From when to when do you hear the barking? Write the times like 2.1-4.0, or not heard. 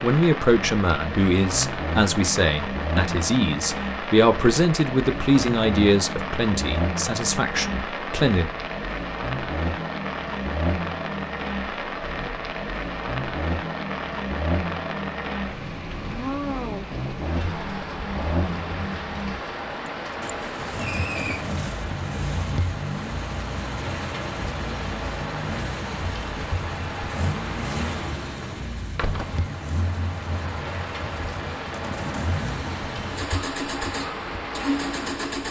not heard.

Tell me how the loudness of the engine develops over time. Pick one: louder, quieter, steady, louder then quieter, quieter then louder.
steady.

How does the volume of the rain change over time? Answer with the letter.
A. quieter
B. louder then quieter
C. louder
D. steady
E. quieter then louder
D.